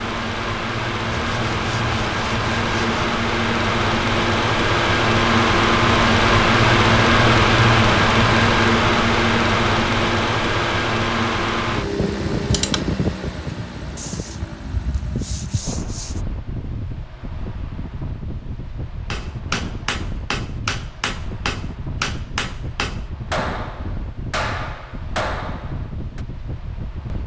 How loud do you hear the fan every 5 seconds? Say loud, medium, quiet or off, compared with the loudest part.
medium, loud, medium, quiet, quiet, quiet.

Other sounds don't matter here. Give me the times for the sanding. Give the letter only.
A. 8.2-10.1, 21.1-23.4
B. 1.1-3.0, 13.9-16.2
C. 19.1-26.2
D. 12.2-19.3
B.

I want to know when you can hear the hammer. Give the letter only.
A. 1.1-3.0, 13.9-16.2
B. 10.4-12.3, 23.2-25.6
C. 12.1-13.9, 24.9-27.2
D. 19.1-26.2
D.